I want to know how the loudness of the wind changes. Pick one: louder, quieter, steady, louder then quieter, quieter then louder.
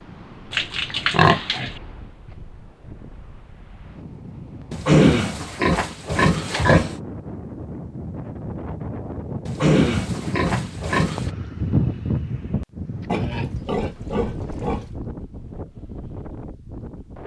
louder then quieter.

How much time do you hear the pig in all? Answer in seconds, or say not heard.
7 s.